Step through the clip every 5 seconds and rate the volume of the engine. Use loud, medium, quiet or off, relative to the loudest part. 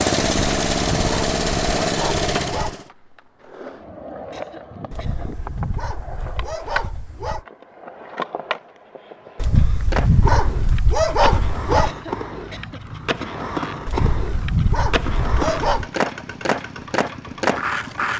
loud, off, off, quiet.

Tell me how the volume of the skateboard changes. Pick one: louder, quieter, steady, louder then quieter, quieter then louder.
louder.